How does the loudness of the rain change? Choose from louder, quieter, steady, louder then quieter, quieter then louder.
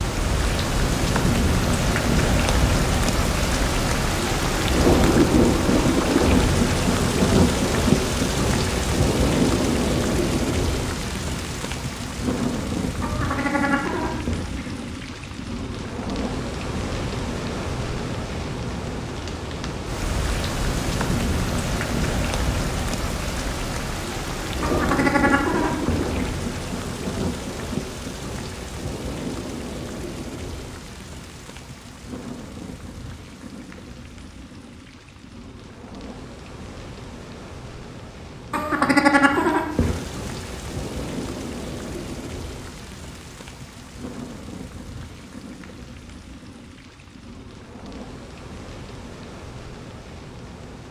quieter.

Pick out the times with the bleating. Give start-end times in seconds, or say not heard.
13.0-14.7, 24.6-26.2, 38.5-40.0.